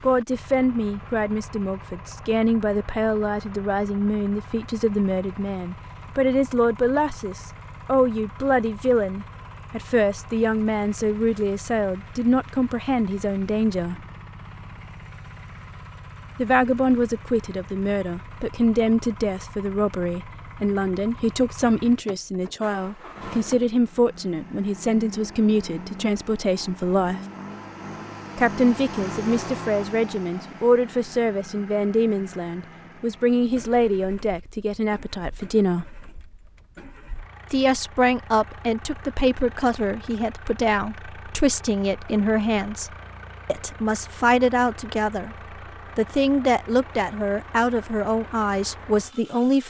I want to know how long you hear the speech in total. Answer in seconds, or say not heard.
44 s.